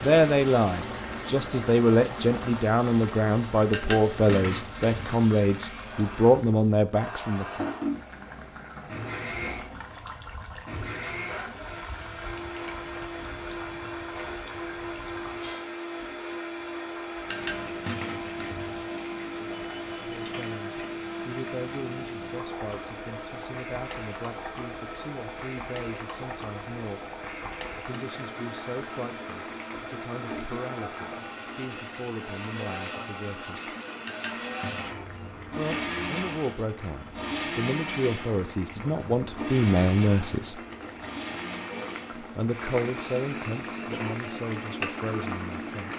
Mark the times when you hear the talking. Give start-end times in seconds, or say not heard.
0.0-7.7, 20.1-27.1, 27.8-33.7, 35.5-40.6, 42.2-45.9.